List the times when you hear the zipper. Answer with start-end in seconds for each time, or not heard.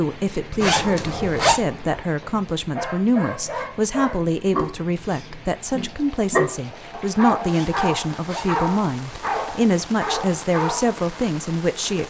0.6-1.6, 7.5-8.7.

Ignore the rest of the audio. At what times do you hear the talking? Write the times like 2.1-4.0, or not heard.
0.0-12.0.